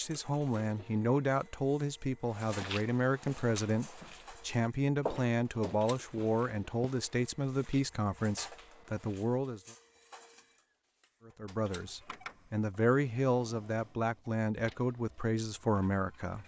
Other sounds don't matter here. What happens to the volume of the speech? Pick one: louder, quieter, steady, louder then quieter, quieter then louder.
steady.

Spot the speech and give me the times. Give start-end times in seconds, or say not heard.
0.0-9.6, 11.2-16.4.